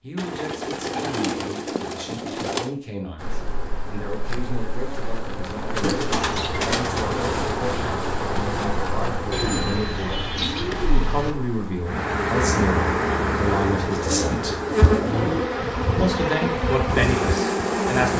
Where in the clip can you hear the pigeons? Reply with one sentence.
The pigeons can be heard from 0.1 to 2.7 s, from 5.8 to 7.3 s, from 9.3 to 11.3 s and from 13.9 to 15.9 s.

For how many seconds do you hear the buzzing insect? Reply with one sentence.
You can hear the buzzing insect for 15 seconds altogether.